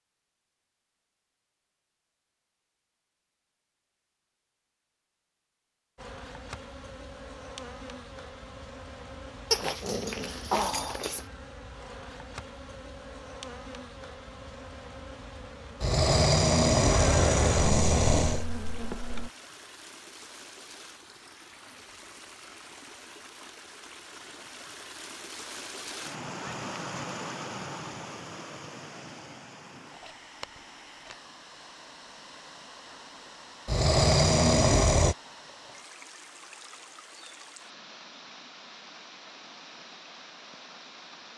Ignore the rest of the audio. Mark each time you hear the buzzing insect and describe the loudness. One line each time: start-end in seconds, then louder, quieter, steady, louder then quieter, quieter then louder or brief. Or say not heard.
6.0-19.3 louder.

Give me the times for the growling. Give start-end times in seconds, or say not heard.
9.5-11.2, 15.8-18.4, 33.6-35.1.